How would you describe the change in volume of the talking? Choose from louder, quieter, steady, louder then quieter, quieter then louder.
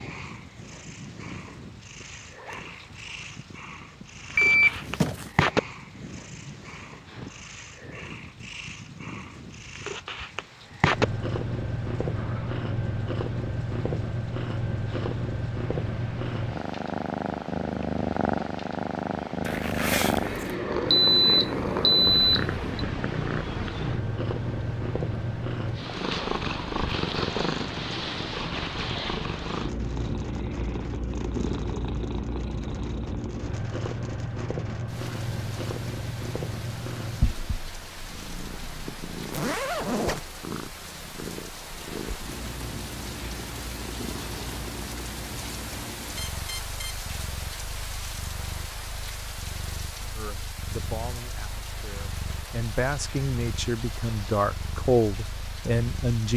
louder.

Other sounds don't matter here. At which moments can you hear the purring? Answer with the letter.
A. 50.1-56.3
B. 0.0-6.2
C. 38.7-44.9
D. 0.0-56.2
D.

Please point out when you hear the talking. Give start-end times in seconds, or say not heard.
50.1-56.3.